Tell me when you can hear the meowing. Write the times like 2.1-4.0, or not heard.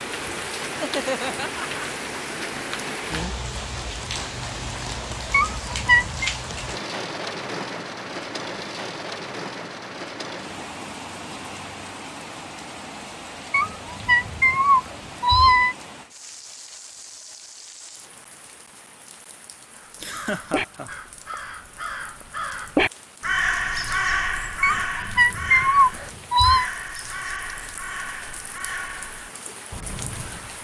5.3-6.3, 13.5-15.8, 24.6-26.7.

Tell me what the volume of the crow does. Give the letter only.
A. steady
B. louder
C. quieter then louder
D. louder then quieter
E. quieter
D.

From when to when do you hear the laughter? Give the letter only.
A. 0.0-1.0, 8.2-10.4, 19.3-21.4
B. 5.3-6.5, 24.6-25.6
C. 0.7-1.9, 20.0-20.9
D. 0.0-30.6
C.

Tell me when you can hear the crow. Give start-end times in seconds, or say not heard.
19.8-30.6.